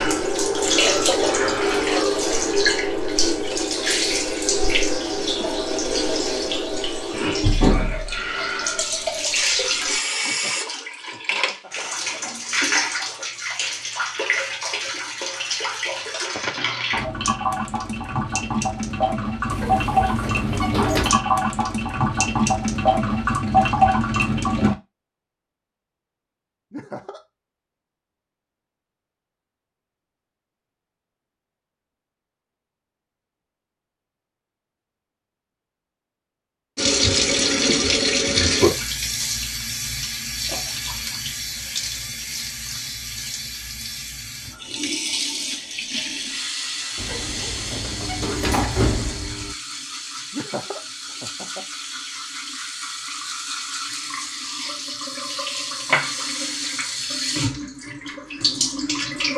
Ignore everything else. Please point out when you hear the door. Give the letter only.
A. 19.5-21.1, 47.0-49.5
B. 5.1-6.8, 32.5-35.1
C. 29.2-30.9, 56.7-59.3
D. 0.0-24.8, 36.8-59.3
A.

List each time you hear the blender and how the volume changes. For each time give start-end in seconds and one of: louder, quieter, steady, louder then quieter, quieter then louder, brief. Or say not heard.
not heard.